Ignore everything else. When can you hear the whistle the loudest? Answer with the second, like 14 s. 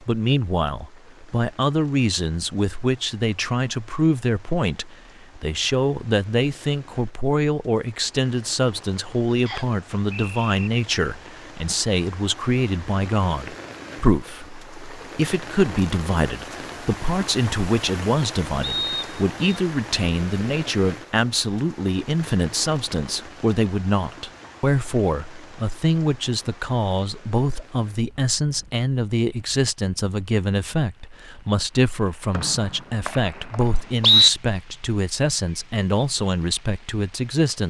34 s.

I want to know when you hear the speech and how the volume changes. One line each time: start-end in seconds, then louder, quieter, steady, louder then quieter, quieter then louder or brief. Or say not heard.
0.0-37.6 steady.